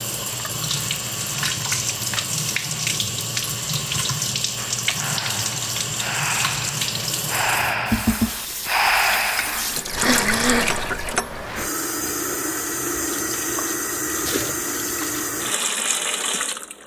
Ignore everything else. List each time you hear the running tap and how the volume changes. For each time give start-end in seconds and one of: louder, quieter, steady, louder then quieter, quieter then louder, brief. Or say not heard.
0.0-16.8 steady.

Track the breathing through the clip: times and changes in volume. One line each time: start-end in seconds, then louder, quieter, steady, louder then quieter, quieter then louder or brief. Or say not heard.
4.5-11.1 louder.